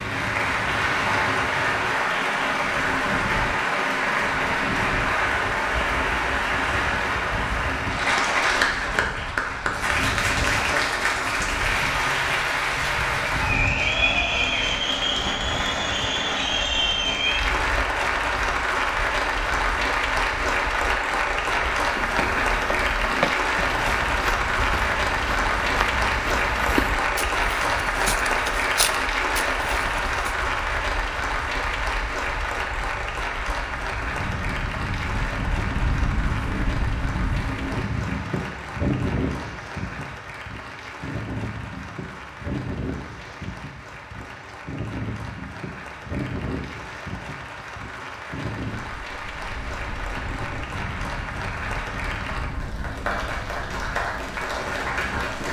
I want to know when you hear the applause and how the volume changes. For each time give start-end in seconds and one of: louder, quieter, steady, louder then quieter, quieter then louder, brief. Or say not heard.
0.0-55.4 quieter.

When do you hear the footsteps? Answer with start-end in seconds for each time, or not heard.
21.8-30.3.